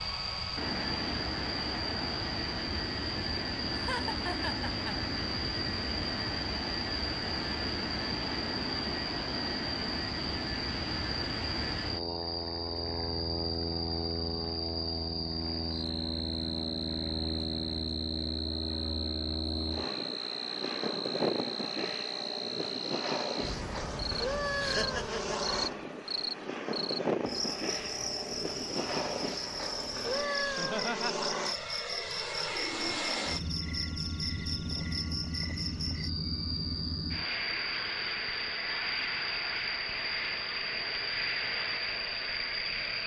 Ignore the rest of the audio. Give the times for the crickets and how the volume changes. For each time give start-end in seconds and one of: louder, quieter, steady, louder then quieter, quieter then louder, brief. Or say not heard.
0.0-43.0 steady.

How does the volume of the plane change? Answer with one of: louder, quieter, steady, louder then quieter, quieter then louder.
steady.